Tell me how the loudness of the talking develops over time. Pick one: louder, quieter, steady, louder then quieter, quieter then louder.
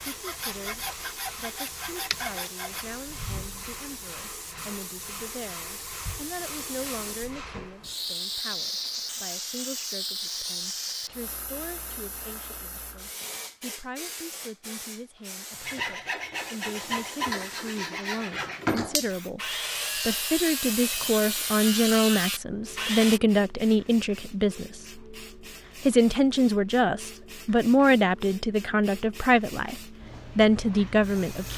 louder.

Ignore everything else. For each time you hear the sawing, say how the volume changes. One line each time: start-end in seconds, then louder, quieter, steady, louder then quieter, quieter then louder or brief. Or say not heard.
0.0-2.9 brief
15.7-23.2 steady.